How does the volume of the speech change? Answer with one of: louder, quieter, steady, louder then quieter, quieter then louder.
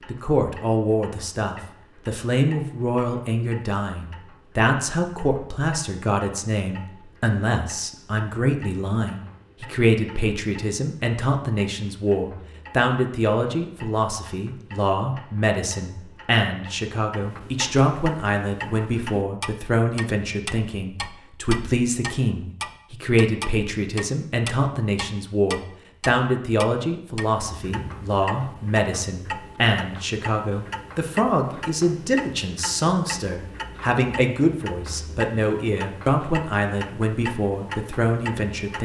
steady.